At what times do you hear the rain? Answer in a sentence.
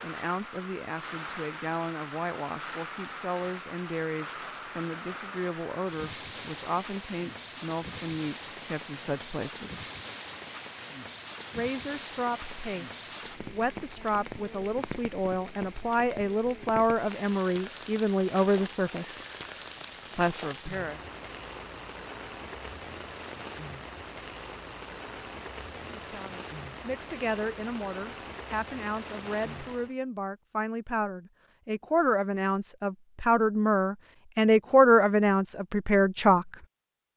You can hear the rain from 0.0 to 29.9 s.